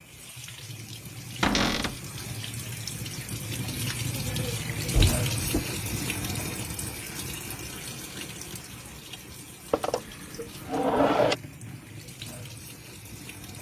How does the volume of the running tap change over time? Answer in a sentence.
The loudness of the running tap goes up, then down.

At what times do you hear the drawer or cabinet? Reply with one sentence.
The drawer or cabinet can be heard from 1.4 to 2.0 s, from 4.9 to 5.7 s and from 9.7 to 11.3 s.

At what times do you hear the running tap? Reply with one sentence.
You can hear the running tap from 0.0 to 13.5 s.